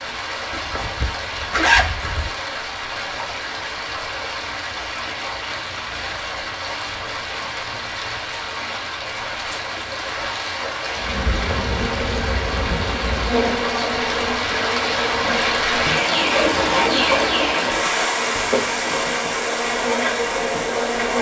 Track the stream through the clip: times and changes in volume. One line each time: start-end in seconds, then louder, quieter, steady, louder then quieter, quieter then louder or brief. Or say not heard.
0.0-21.1 louder.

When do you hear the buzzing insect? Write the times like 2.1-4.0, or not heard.
10.9-21.1.